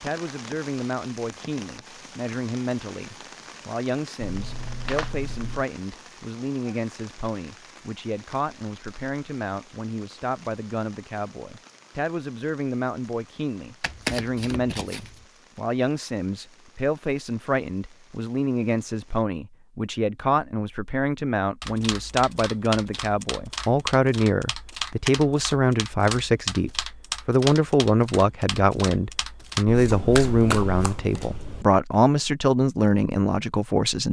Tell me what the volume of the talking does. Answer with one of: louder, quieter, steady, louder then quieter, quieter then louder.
louder.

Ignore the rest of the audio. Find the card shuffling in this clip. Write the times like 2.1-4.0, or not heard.
4.2-5.7, 13.8-15.2, 29.6-31.6.